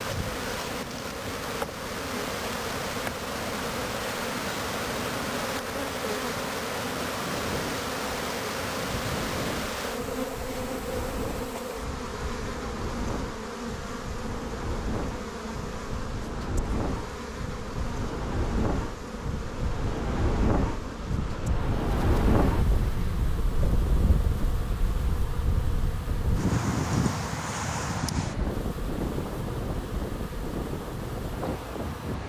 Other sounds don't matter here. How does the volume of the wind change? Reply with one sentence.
The volume of the wind goes up.